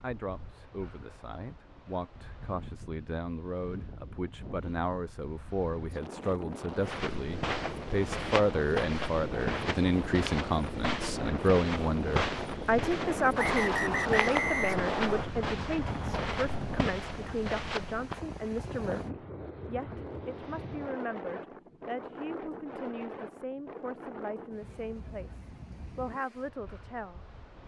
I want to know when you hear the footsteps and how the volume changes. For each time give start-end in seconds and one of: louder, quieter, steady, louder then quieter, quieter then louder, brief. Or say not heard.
6.8-18.2 steady.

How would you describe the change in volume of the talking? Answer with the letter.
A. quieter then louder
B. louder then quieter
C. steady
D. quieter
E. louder
B.